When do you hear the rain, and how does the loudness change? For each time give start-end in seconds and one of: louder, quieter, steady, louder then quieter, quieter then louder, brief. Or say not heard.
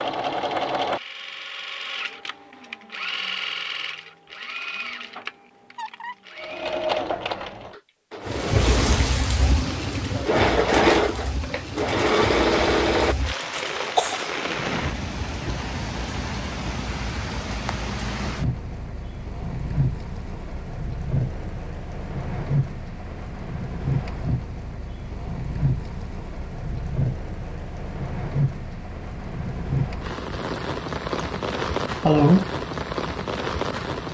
8.2-34.0 steady.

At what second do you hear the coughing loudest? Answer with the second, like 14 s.
32 s.